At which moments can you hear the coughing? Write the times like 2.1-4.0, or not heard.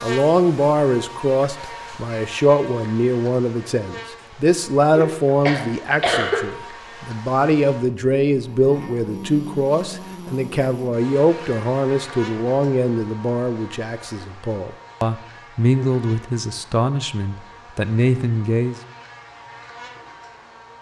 4.9-6.4.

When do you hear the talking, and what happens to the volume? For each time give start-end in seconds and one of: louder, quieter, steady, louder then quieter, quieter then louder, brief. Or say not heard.
0.0-18.8 steady.